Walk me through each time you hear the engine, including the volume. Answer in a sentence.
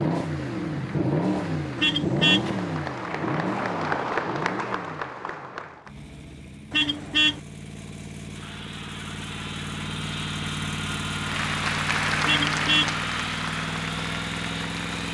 You can hear the engine from 0.0 to 15.1 s, getting quieter then louder.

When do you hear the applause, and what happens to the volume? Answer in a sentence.
The applause can be heard from 0.0 to 6.0 s, getting louder then quieter; and from 11.1 to 15.1 s, getting quieter.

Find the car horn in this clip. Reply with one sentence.
The car horn can be heard from 1.8 to 2.5 s, from 6.7 to 7.4 s and from 12.2 to 12.9 s.